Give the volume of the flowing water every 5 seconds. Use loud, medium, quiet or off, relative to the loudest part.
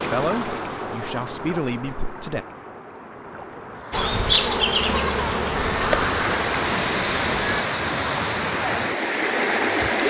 medium, loud.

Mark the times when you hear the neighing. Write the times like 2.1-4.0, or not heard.
5.5-6.2.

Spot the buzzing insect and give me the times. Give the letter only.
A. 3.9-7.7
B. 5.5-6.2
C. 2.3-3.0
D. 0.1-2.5
A.